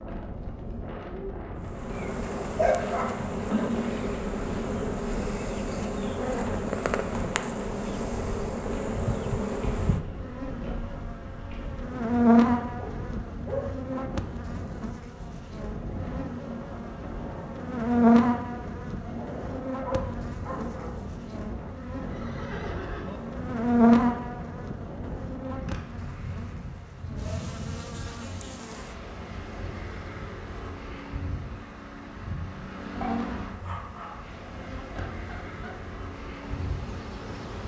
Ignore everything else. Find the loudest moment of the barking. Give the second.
3 s.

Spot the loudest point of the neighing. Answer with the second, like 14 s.
4 s.